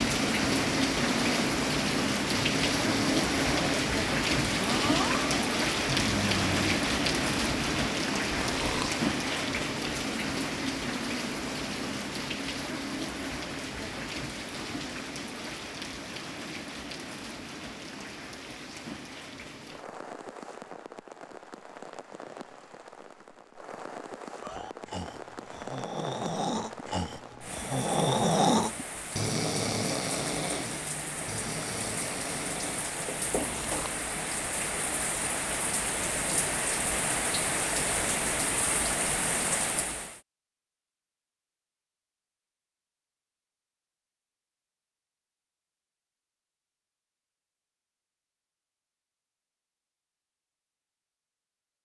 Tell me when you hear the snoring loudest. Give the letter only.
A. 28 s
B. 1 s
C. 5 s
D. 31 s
A.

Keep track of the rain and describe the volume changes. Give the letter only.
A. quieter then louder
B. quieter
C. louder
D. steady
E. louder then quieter
A.